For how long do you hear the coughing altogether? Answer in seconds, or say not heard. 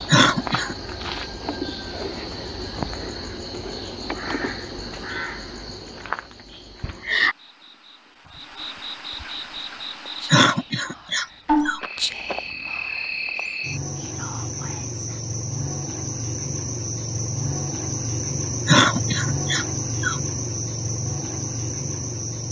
4 s.